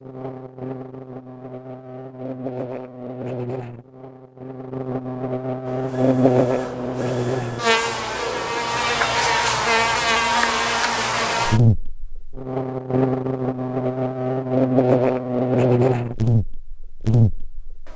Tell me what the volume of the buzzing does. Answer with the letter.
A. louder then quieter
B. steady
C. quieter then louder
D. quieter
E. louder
E.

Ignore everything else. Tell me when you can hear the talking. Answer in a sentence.
The talking can't be heard in this clip.